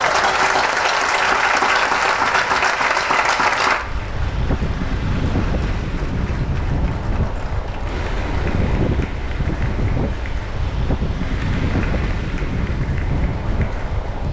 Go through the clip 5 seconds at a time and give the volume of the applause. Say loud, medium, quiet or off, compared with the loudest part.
loud, quiet, quiet.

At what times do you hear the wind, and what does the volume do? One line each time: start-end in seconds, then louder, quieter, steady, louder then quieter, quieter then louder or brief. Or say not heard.
0.0-14.2 louder.